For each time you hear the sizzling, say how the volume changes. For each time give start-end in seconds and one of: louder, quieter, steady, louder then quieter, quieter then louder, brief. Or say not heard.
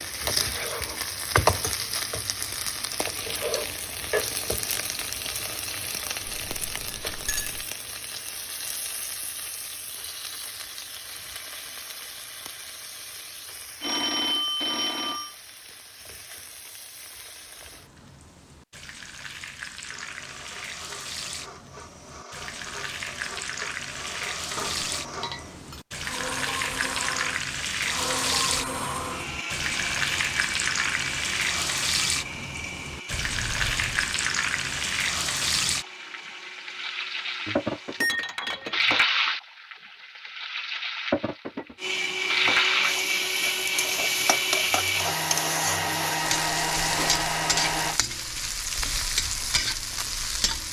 0.0-50.6 quieter then louder.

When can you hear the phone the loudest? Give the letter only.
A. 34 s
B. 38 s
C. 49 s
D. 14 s
D.